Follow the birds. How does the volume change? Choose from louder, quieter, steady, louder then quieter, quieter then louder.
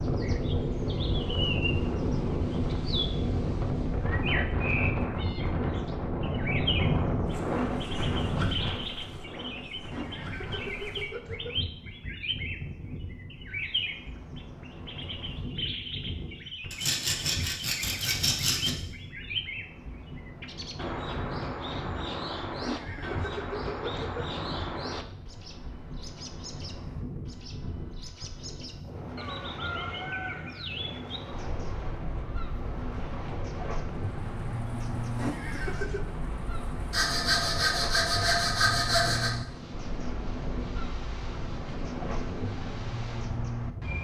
steady.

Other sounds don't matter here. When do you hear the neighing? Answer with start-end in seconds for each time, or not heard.
9.9-11.6, 22.6-24.2, 35.1-36.1.